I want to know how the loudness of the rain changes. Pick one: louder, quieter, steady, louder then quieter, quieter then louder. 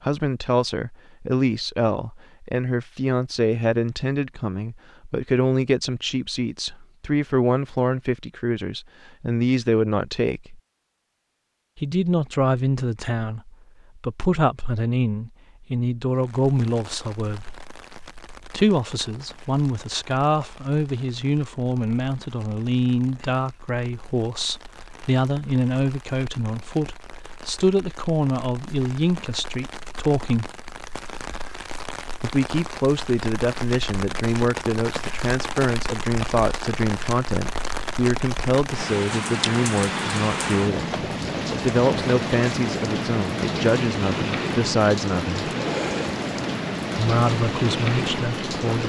louder.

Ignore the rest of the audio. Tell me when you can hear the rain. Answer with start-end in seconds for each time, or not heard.
16.1-48.8.